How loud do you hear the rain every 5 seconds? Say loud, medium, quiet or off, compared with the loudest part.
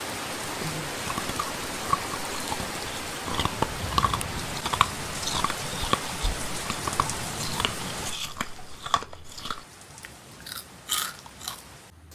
loud, loud, quiet.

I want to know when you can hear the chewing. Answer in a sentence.
The chewing can be heard from 0.5 to 11.8 s.